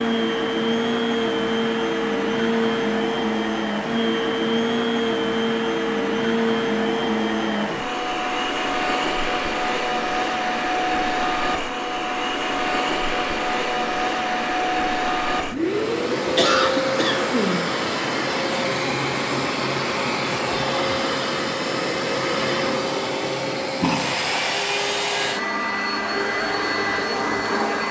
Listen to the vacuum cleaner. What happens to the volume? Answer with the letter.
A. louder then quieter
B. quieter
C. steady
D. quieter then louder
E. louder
C.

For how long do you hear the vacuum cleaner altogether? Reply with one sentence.
You can hear the vacuum cleaner for 28 seconds altogether.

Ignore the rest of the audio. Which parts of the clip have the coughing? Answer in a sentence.
You can hear the coughing from 16.4 to 17.7 s.